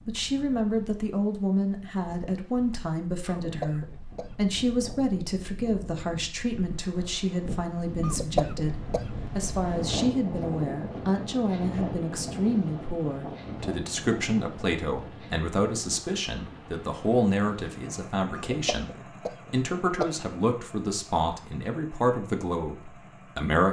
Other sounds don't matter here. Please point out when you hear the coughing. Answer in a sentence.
You can hear the coughing from 3.2 to 4.5 s, from 8.0 to 9.7 s and from 18.3 to 20.4 s.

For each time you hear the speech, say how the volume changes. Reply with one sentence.
You can hear the speech from 0.1 to 23.6 s, at a steady volume.